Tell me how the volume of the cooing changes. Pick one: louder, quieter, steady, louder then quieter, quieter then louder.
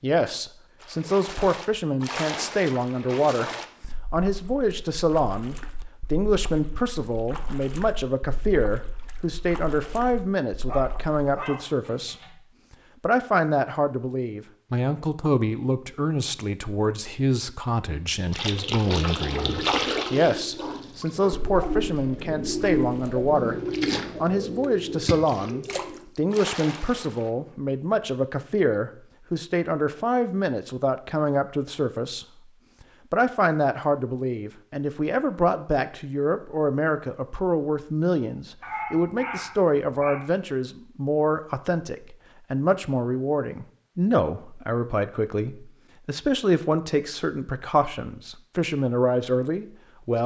louder then quieter.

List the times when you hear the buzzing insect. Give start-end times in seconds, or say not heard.
not heard.